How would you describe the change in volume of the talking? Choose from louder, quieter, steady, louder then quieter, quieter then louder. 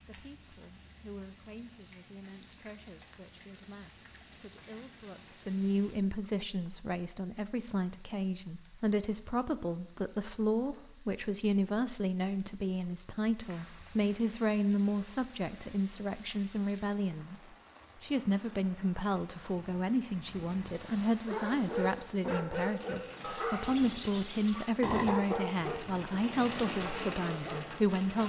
louder.